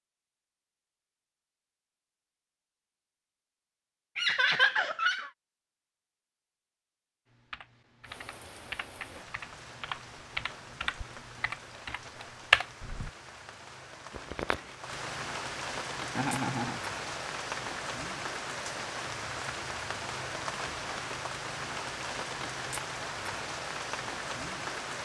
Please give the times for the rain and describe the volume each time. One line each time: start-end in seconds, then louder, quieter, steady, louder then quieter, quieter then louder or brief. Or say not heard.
8.0-25.0 louder.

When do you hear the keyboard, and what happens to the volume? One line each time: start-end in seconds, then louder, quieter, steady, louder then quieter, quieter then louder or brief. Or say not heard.
7.3-13.1 louder.